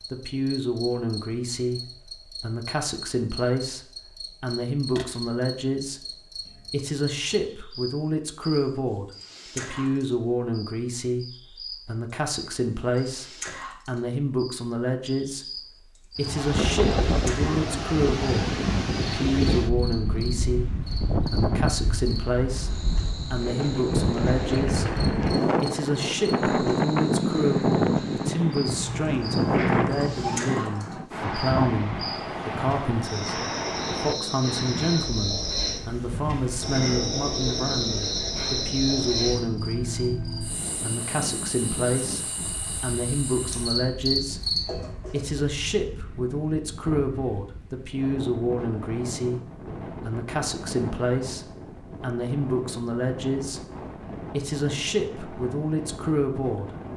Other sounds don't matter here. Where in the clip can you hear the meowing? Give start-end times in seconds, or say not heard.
4.9-5.3, 28.6-30.4, 44.6-45.5.